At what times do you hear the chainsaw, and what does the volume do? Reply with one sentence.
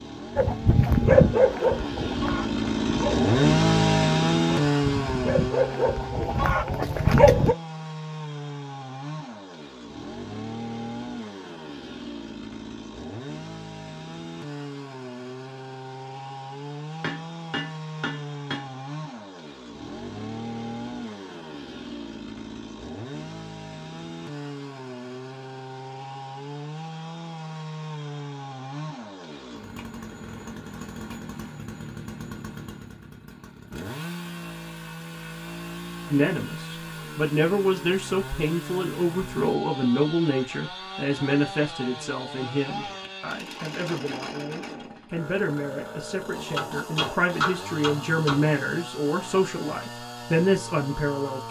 You can hear the chainsaw from 0.0 to 51.4 s, getting quieter.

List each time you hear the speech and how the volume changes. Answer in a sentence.
You can hear the speech from 36.0 to 51.4 s, getting quieter then louder.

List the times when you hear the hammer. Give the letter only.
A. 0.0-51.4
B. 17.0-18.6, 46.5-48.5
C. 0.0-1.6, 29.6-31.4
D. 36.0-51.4
B.